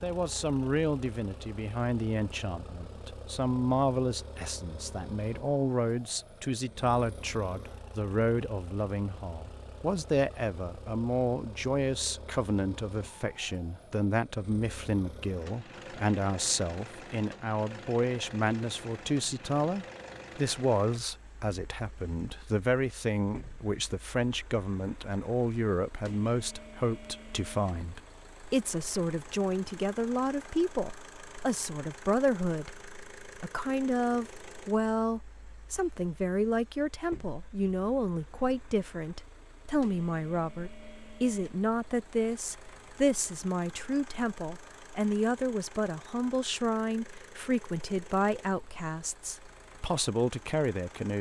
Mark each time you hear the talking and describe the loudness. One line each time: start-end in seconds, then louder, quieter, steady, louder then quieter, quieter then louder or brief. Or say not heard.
0.0-51.1 steady.